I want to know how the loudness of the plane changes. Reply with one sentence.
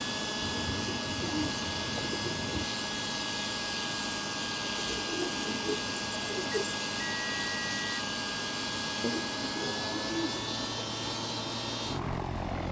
The loudness of the plane stays about the same.